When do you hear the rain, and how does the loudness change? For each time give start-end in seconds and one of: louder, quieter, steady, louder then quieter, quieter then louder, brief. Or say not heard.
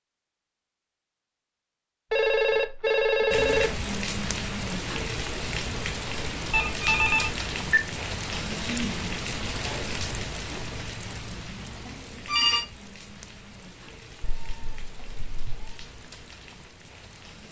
3.3-17.4 quieter.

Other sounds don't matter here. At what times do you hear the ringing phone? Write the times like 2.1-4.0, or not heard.
2.1-3.9, 6.5-7.8, 11.8-12.7.